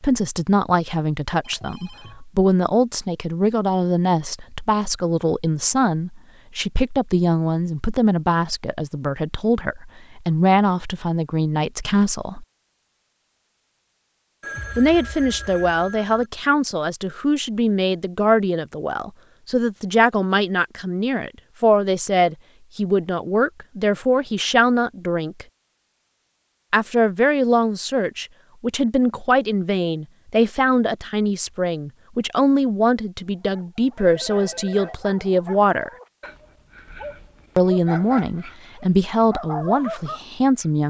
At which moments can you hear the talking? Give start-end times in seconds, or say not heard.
0.0-12.4, 14.8-25.4, 26.7-35.9, 37.5-40.8.